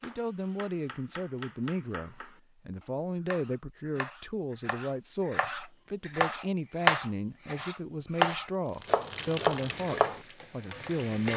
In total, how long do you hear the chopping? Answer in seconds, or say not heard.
10 s.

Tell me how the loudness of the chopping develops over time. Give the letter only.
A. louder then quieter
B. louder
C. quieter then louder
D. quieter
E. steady
B.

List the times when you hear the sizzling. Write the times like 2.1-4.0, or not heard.
8.7-11.3.